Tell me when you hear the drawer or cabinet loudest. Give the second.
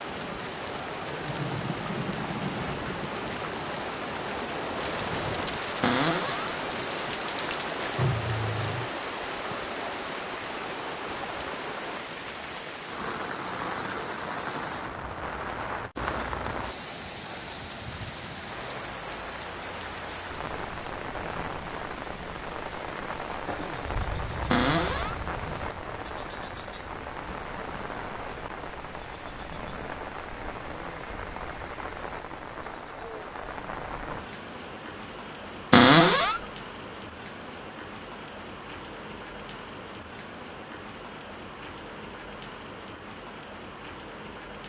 36 s.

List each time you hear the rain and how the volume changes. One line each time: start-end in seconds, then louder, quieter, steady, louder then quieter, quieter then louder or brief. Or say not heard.
0.0-44.6 quieter.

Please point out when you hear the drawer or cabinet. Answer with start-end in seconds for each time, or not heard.
5.8-6.5, 24.5-25.1, 35.7-36.4.